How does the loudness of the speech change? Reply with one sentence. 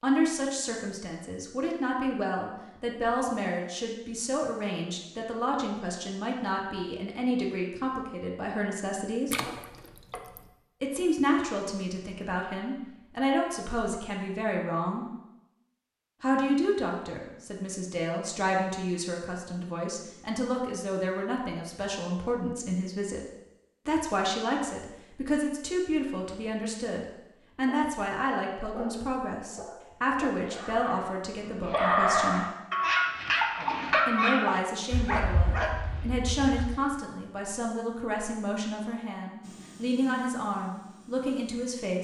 The volume of the speech stays about the same.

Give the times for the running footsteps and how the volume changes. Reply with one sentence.
The running footsteps can't be heard in this clip.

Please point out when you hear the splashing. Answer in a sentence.
You can hear the splashing from 9.2 to 10.4 s.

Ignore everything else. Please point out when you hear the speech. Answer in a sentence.
The speech can be heard from 0.0 to 9.3 s, from 10.8 to 15.1 s, from 16.2 to 23.2 s, from 23.9 to 32.5 s and from 34.0 to 42.0 s.